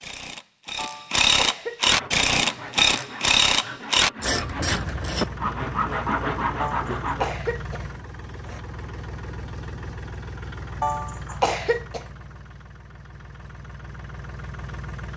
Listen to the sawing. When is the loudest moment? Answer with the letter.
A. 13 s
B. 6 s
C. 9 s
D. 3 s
B.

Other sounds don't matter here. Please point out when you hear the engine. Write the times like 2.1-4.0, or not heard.
4.3-15.1.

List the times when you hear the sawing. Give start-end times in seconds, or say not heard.
1.8-7.3.